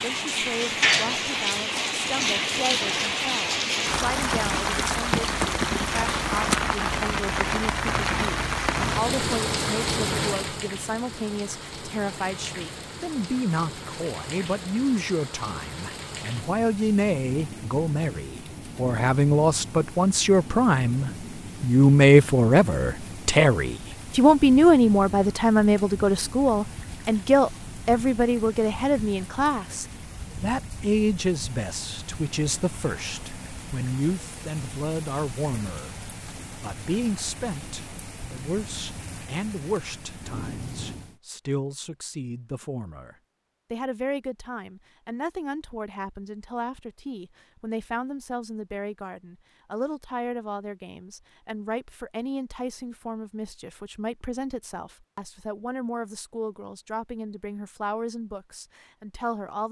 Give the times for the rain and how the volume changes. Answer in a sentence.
The rain can be heard from 0.0 to 41.2 s, getting quieter.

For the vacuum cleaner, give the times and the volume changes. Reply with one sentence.
The vacuum cleaner can't be heard in this clip.